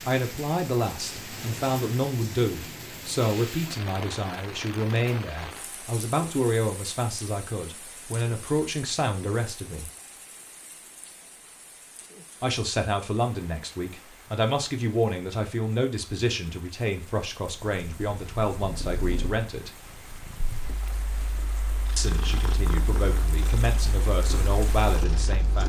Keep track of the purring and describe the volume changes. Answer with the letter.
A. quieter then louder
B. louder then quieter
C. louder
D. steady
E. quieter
A.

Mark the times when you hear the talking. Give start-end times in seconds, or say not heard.
0.0-9.9, 12.4-19.7, 21.9-25.6.